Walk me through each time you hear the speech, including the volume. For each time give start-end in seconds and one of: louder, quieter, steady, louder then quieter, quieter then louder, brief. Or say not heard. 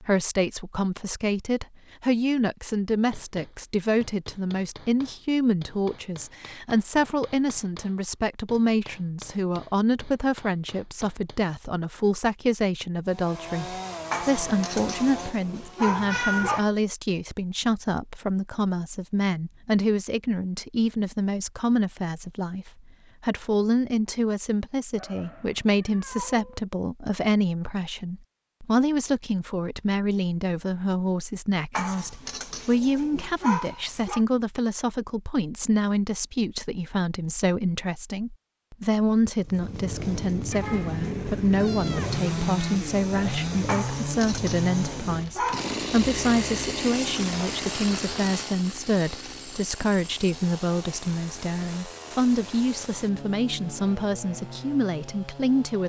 0.0-55.8 steady.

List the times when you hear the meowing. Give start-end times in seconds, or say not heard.
15.8-16.6, 24.9-26.6, 40.5-42.5.